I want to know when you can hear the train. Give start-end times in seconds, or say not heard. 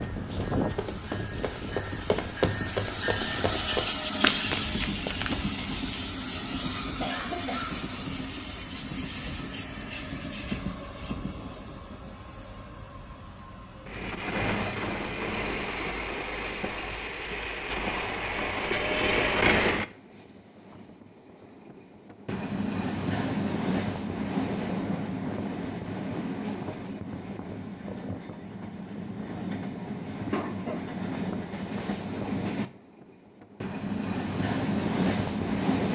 0.0-35.8.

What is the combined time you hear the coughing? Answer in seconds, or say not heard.
2 s.